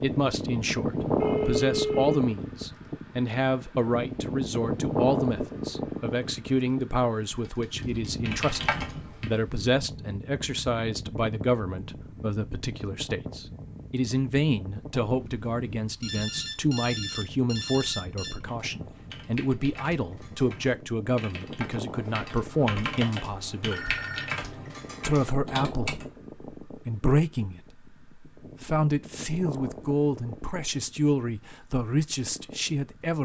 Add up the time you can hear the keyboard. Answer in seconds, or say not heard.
10 s.